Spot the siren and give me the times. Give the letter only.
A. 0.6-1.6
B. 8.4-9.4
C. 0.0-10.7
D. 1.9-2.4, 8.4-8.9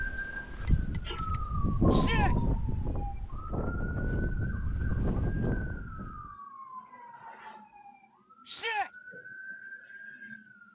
C.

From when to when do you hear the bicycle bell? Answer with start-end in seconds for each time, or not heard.
0.6-1.6.